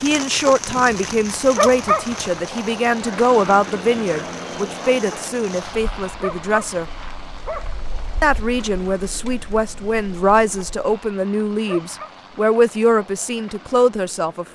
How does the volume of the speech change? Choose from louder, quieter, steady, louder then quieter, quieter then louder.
steady.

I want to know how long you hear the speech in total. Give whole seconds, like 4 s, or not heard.
13 s.